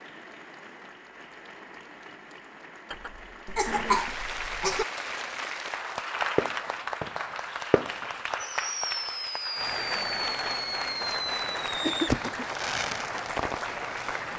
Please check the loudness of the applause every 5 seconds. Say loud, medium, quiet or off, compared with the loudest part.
medium, loud, loud.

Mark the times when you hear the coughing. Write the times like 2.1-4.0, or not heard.
2.9-4.8, 11.8-12.4.